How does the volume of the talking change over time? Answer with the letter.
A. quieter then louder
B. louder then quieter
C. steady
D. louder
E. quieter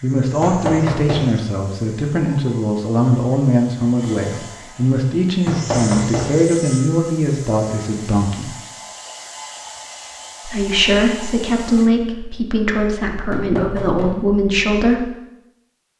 C.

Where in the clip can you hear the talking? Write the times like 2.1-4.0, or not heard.
0.0-8.6, 10.4-15.1.